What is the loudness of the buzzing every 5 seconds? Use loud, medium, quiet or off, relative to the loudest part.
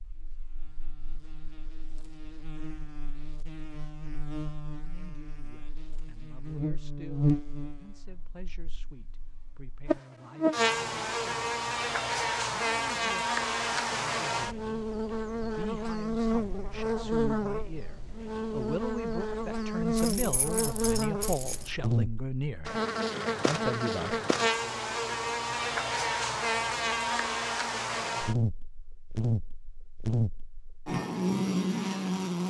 quiet, medium, loud, loud, loud, loud, loud.